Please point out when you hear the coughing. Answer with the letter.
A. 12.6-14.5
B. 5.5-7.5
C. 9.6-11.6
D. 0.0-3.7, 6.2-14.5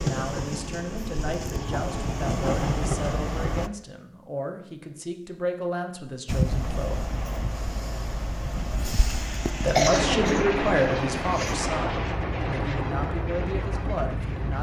C.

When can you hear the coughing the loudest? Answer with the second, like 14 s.
10 s.